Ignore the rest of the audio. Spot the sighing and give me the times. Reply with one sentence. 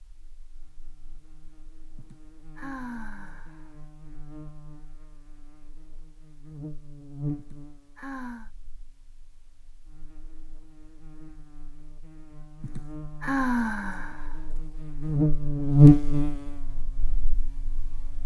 You can hear the sighing from 1.9 to 3.7 s, from 7.3 to 8.5 s and from 12.6 to 14.3 s.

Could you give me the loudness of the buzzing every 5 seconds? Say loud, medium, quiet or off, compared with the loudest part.
quiet, quiet, quiet, loud.